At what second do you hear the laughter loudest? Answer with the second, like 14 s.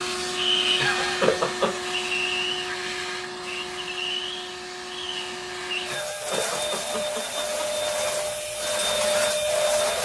1 s.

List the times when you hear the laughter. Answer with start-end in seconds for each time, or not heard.
0.8-1.7, 5.9-7.8.